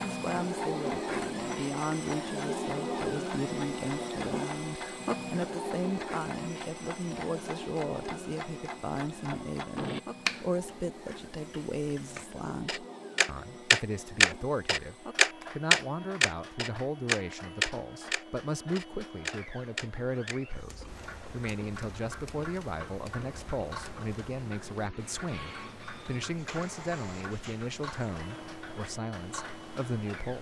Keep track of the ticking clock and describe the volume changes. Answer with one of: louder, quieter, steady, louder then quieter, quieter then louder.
louder then quieter.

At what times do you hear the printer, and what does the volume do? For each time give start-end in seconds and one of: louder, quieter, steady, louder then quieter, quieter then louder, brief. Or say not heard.
0.0-30.3 quieter.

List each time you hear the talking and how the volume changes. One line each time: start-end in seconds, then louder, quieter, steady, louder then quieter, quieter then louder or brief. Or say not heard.
0.1-30.3 steady.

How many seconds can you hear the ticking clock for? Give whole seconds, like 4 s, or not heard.
30 s.